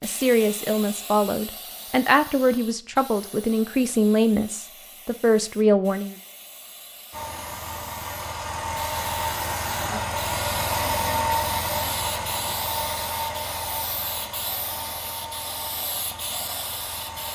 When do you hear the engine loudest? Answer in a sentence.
The loudest moment of the engine is at 11 seconds.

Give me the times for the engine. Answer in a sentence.
You can hear the engine from 7.1 to 17.3 s.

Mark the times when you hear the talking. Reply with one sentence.
You can hear the talking from 0.0 to 6.2 s.